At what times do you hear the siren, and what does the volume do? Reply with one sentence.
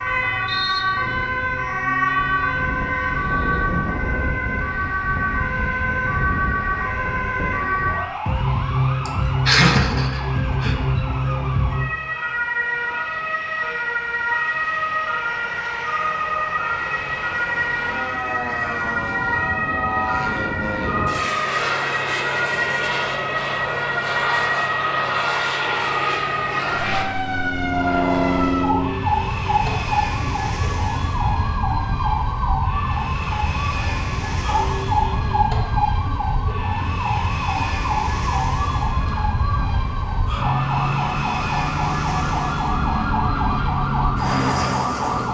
You can hear the siren from 0.0 to 45.2 s, at a steady volume.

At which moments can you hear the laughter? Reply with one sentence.
The laughter can be heard from 9.1 to 10.8 s.